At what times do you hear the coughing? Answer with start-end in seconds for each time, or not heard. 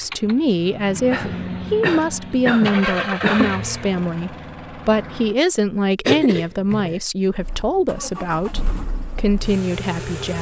1.1-3.6, 6.0-7.0.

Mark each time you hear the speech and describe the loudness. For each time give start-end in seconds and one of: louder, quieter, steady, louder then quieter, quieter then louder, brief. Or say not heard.
0.0-10.3 steady.